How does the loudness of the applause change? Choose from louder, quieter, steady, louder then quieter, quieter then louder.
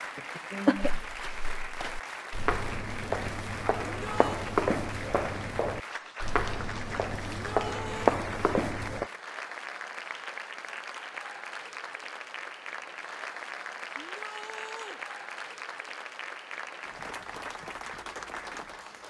steady.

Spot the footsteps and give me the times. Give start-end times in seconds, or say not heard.
0.8-9.1.